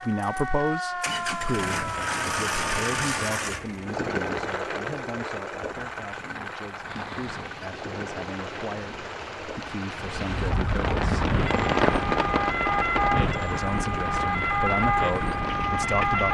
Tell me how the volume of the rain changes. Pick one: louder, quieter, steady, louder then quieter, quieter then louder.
louder then quieter.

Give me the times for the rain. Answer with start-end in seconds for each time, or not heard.
6.8-16.2.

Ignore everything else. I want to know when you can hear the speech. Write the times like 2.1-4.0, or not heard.
0.0-11.3, 13.3-16.2.